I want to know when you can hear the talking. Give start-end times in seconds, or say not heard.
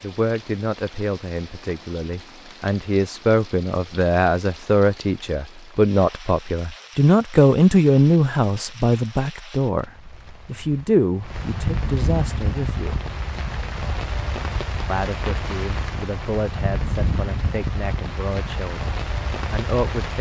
0.0-13.0, 14.8-20.1.